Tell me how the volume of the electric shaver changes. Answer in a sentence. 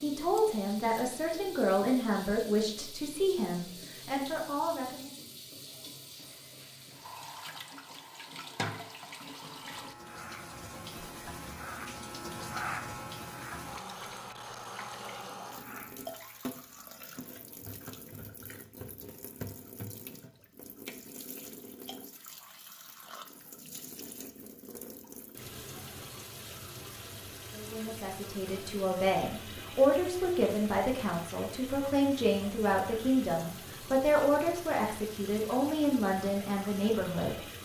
The loudness of the electric shaver goes up, then down.